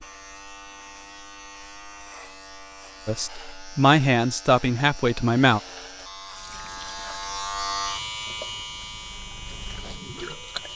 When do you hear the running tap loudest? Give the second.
10 s.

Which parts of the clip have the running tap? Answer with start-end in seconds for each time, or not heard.
6.3-10.7.